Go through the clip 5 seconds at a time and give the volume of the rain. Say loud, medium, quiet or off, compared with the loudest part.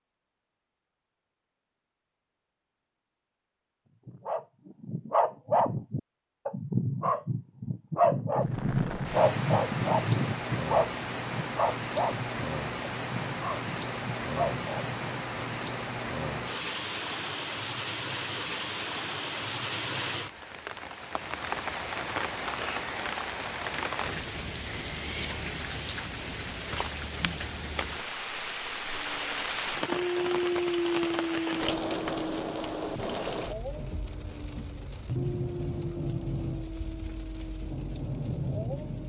off, loud, loud, loud, loud, loud, loud, loud.